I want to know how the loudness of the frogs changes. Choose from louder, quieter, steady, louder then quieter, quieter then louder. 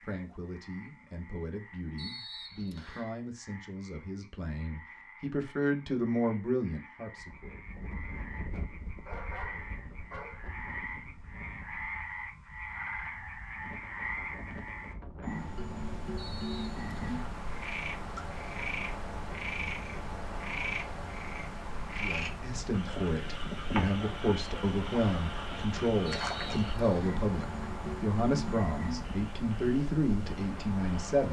louder.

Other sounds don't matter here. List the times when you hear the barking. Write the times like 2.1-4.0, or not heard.
9.1-10.5.